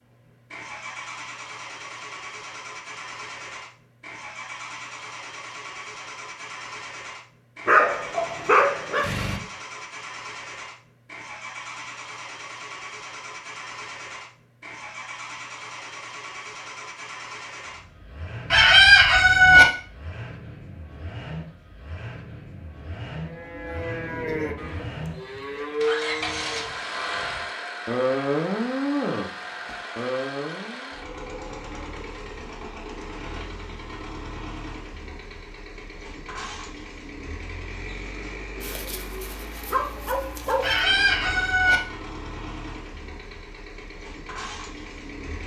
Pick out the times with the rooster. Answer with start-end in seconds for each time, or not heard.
18.5-19.6, 40.6-41.8.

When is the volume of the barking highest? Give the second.
8 s.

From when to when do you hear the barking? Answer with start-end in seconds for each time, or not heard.
7.7-9.4, 38.6-40.8.